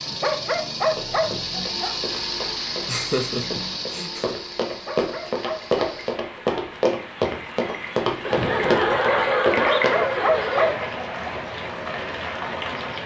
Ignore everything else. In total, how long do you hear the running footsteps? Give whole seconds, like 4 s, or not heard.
9 s.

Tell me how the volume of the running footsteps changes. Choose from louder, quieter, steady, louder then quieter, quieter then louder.
louder.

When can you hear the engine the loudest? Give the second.
2 s.